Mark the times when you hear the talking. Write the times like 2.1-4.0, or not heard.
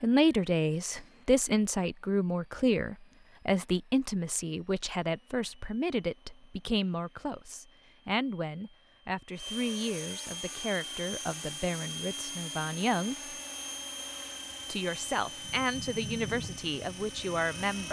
0.0-13.3, 14.7-17.8.